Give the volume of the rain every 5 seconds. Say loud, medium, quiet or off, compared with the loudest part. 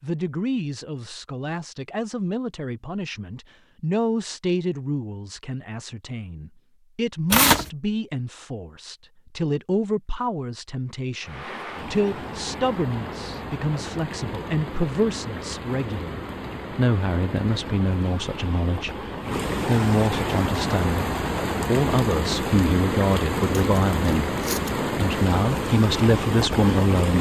off, off, medium, medium, loud, loud.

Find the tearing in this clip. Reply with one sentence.
The tearing can be heard from 7.3 to 7.7 s and from 23.6 to 24.7 s.